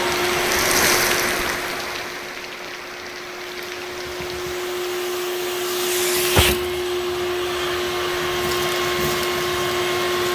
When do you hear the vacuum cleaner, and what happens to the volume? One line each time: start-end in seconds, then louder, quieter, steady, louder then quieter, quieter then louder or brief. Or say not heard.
0.0-10.3 quieter then louder.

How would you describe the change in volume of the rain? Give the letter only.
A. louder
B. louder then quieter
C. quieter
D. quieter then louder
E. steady
C.